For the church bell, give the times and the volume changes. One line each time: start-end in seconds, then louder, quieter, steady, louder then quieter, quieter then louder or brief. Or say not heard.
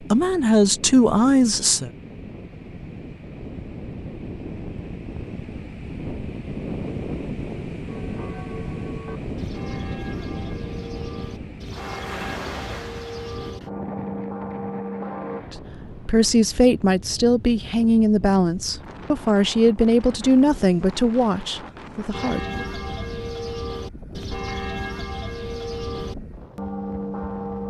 7.8-15.4 louder
22.1-27.6 steady.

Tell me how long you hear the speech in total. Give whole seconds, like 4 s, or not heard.
9 s.